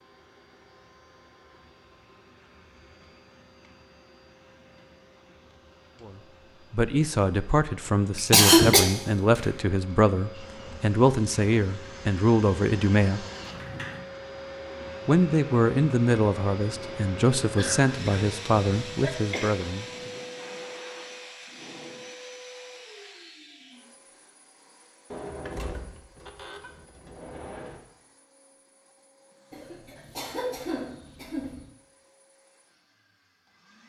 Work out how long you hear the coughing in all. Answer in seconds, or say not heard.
5 s.